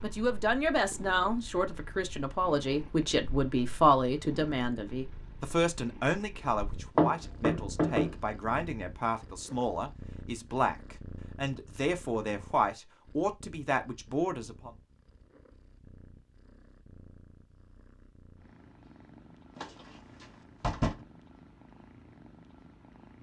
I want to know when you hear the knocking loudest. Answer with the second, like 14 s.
7 s.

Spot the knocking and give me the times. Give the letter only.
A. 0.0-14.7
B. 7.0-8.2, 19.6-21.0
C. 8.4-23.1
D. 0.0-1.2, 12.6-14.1
B.